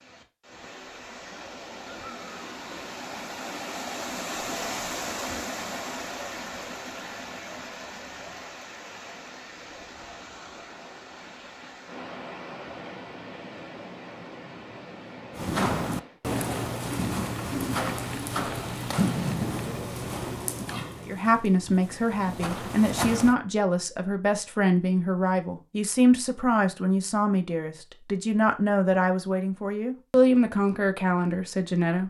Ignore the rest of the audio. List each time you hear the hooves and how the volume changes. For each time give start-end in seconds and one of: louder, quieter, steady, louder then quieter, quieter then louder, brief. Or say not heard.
15.3-23.4 quieter.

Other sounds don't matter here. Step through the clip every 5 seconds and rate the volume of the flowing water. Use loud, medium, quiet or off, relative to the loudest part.
loud, loud, medium, medium, off, off, off.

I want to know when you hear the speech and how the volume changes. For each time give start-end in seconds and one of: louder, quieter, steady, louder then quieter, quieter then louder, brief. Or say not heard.
21.0-32.0 steady.